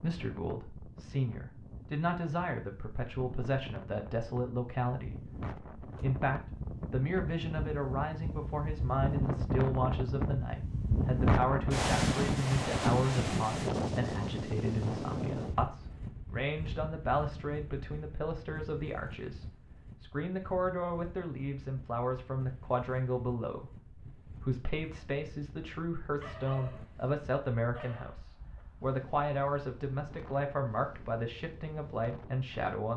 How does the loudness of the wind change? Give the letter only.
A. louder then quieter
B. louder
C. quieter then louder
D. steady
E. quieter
A.